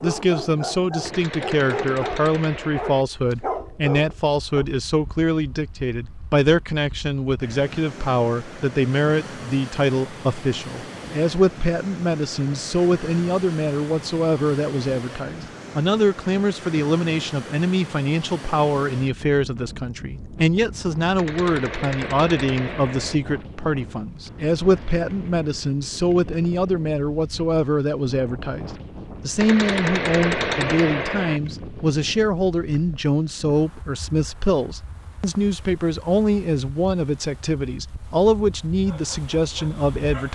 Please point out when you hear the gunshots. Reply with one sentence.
You can hear the gunshots from 1.1 to 3.0 s, from 21.1 to 23.2 s and from 29.4 to 31.4 s.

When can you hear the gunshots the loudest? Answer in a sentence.
The loudest moment of the gunshots is at 30 seconds.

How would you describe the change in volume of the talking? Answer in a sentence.
The volume of the talking stays about the same.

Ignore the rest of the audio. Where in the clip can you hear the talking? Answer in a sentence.
You can hear the talking from 0.0 to 40.3 s.